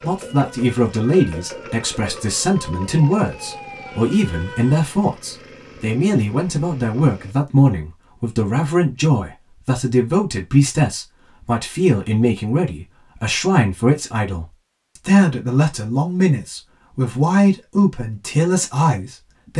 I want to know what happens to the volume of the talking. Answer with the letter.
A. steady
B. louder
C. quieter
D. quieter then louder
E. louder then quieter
A.